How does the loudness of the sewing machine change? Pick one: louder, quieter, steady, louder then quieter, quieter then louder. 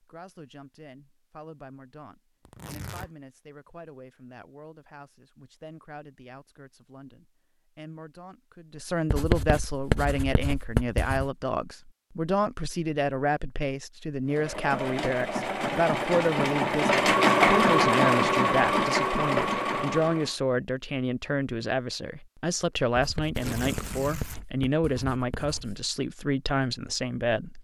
louder then quieter.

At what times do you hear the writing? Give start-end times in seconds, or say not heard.
9.1-11.3, 22.9-25.9.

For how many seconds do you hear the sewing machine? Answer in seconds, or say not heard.
6 s.